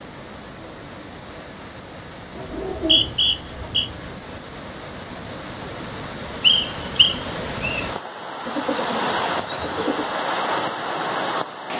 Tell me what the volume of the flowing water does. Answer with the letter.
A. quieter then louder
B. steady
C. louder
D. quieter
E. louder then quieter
C.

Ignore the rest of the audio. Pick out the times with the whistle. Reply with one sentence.
The whistle can be heard from 2.7 to 3.9 s and from 6.4 to 7.8 s.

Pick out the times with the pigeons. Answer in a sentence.
You can hear the pigeons from 2.3 to 4.2 s and from 8.4 to 10.1 s.